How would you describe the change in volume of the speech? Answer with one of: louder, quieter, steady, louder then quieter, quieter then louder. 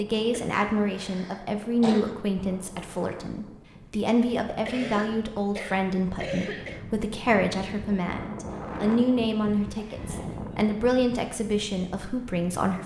steady.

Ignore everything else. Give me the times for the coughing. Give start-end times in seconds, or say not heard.
0.3-2.2, 4.7-6.8, 9.8-10.6.